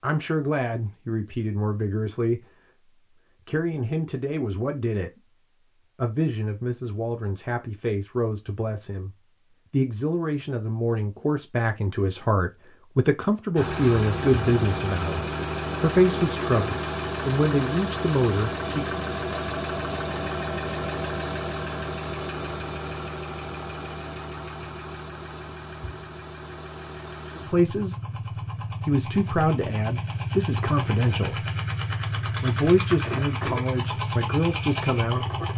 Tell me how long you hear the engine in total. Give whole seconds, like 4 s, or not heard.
22 s.